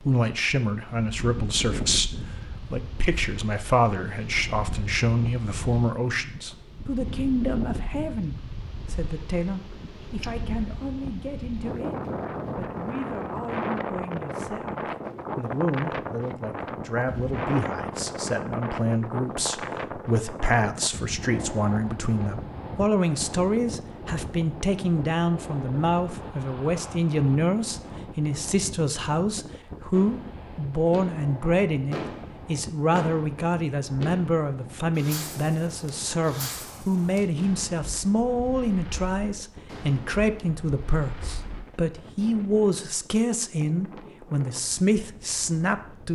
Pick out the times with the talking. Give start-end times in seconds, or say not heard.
0.0-46.1.